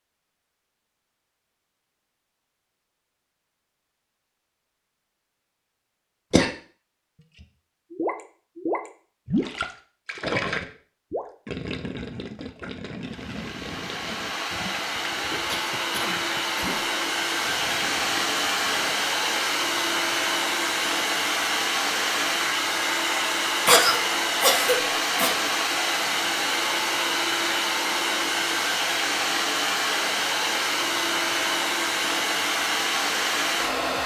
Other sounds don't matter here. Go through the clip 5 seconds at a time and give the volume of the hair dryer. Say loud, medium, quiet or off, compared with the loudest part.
off, off, medium, loud, loud, loud, loud.